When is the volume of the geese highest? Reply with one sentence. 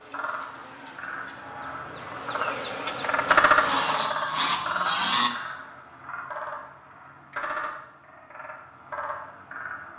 The loudest moment of the geese is at 5 seconds.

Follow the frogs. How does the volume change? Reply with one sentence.
The loudness of the frogs goes up, then down.